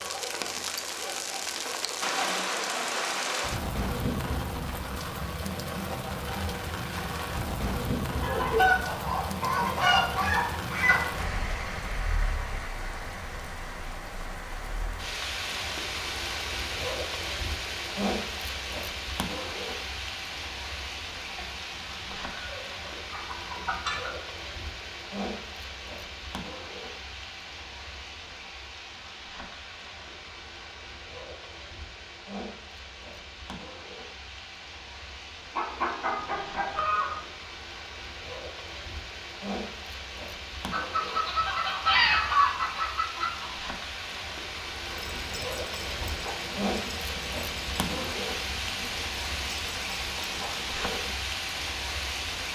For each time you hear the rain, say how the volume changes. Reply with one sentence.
You can hear the rain from 0.0 to 52.5 s, getting quieter then louder.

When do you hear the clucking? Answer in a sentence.
The clucking can be heard from 8.2 to 11.1 s, from 21.4 to 24.1 s, from 35.5 to 37.2 s and from 40.7 to 43.6 s.